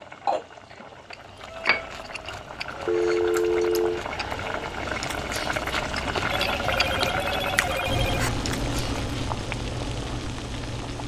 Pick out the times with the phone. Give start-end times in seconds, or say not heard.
2.9-4.0, 6.3-8.3.